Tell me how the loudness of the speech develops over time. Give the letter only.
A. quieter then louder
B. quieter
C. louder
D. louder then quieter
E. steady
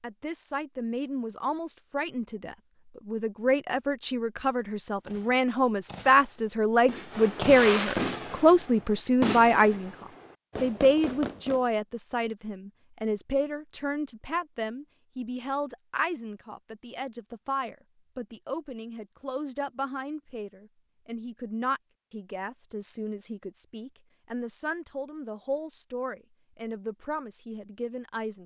D.